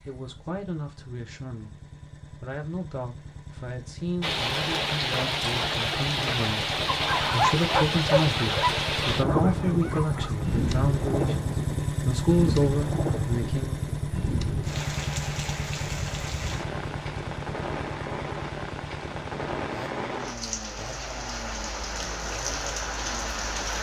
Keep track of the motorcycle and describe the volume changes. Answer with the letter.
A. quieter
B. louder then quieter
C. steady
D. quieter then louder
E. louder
B.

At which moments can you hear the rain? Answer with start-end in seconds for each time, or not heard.
4.2-23.7.